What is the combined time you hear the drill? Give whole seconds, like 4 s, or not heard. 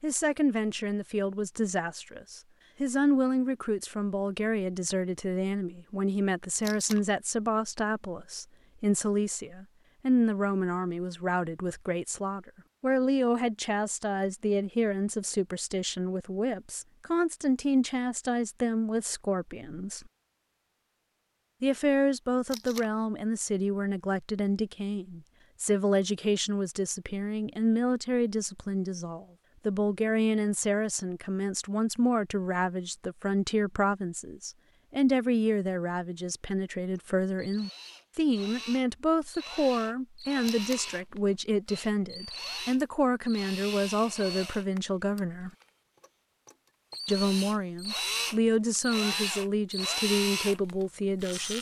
15 s.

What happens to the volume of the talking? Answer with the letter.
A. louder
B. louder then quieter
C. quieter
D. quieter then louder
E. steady
E.